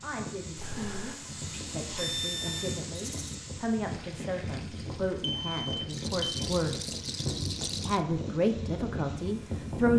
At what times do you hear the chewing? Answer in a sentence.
The chewing can't be heard in this clip.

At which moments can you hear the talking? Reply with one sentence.
The talking can be heard from 0.0 to 7.0 s and from 7.8 to 9.9 s.